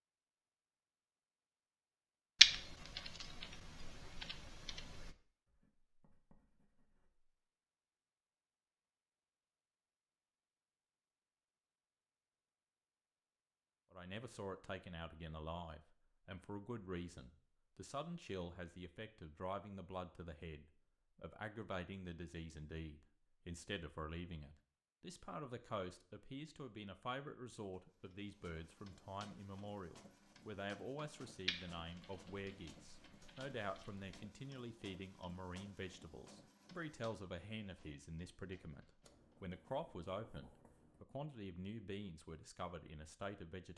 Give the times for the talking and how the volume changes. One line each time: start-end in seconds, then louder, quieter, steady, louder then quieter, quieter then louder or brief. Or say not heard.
13.9-43.7 steady.